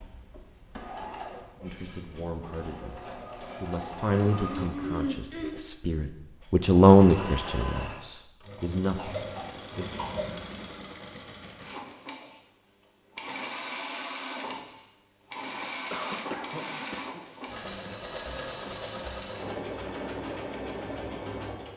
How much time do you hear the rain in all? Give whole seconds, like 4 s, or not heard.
not heard.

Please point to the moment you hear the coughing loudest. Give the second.
5 s.